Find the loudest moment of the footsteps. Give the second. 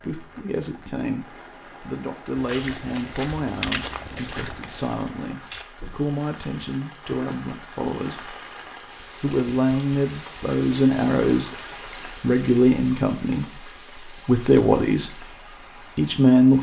4 s.